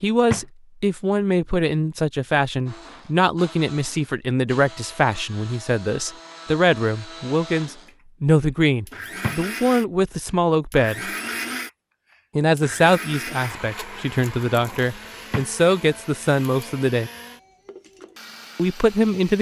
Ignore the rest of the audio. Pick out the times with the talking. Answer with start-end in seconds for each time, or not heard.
0.0-11.1, 12.3-17.1, 18.6-19.3.